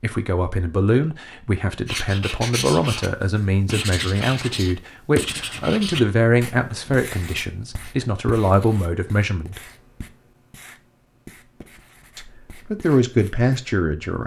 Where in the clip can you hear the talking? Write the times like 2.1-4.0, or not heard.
0.0-9.6, 12.2-14.2.